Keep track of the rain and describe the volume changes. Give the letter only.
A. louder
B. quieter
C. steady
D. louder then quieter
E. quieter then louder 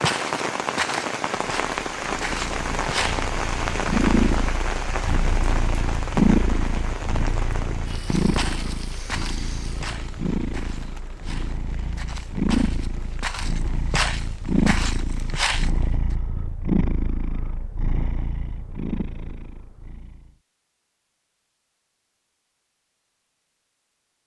B.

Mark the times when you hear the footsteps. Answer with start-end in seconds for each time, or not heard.
0.0-3.2, 8.0-15.7.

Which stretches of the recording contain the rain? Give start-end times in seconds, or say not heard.
0.0-15.4.